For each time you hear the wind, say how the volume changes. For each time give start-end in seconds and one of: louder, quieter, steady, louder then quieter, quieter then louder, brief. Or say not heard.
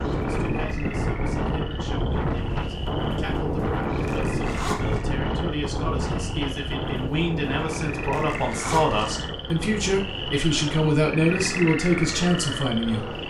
0.0-13.2 quieter.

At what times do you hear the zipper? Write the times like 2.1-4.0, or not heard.
4.0-5.0, 8.0-9.1.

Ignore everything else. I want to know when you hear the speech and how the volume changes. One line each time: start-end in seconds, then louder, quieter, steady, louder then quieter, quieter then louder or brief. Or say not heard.
0.1-13.1 louder.